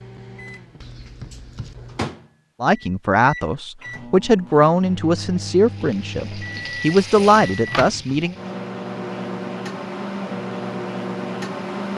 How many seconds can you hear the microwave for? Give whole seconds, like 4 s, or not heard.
12 s.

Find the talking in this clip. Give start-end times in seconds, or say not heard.
2.6-8.3.